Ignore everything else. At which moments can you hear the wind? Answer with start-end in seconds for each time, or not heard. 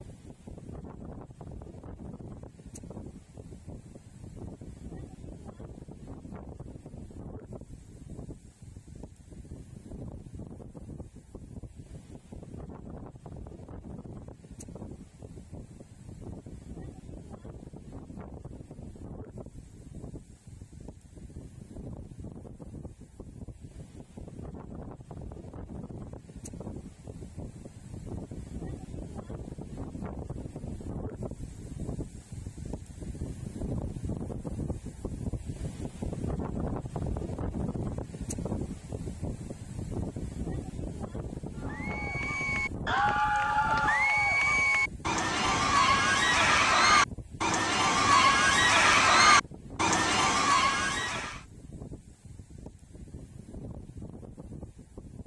0.0-55.2.